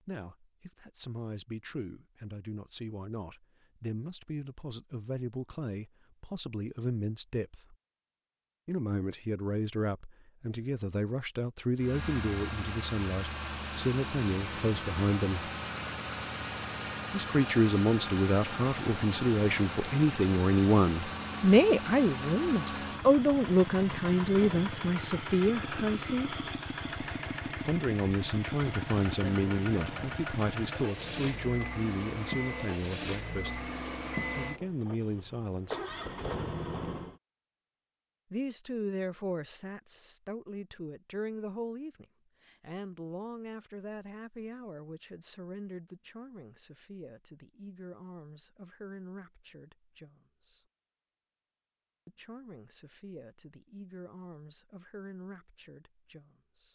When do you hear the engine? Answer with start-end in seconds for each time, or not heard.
11.8-37.2.